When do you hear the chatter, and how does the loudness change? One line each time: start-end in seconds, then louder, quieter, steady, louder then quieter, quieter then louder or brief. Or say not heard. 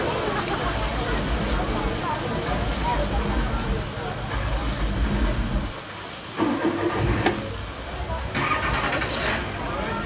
0.0-10.0 quieter then louder.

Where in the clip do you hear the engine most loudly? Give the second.
7 s.